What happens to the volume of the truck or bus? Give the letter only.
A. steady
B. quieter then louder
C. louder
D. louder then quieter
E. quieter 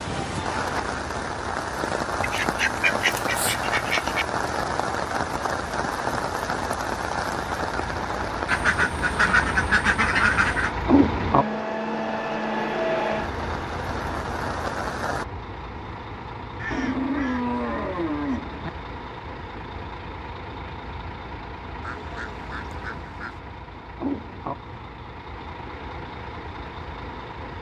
D.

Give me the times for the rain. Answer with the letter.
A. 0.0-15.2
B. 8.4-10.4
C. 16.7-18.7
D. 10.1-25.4
A.